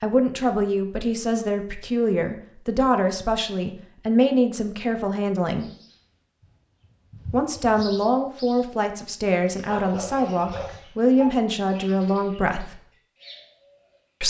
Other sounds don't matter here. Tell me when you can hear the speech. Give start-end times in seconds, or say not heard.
0.0-5.7, 7.3-12.8.